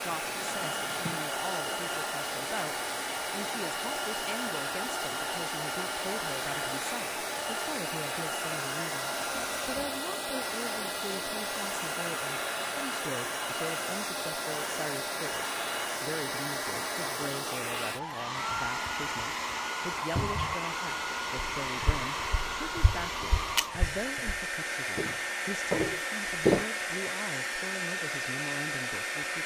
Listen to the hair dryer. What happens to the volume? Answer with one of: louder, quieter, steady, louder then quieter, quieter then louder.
steady.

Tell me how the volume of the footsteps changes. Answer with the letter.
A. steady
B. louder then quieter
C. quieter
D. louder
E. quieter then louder
E.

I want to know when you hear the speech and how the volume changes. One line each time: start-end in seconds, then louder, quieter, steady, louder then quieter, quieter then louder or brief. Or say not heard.
0.0-29.4 steady.